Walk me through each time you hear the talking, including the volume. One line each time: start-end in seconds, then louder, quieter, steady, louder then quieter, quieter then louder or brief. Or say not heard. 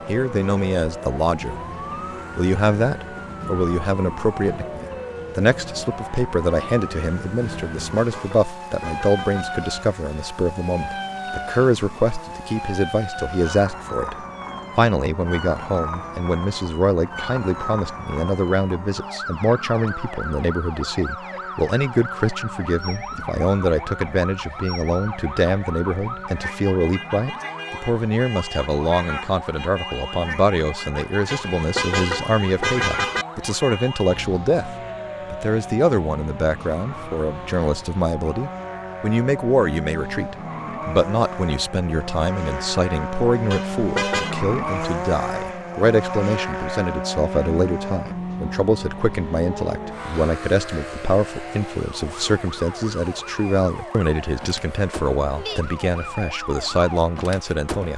0.1-1.6 brief
2.4-57.9 steady.